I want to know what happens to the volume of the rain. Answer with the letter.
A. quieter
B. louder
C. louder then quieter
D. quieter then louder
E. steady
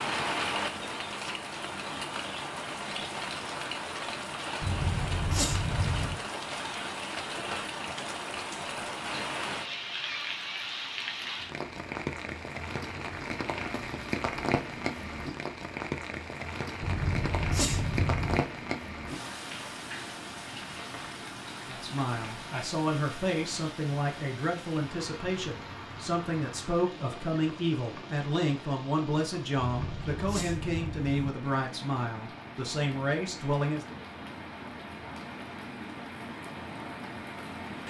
A.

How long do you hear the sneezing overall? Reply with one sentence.
The sneezing can be heard for 5 seconds in total.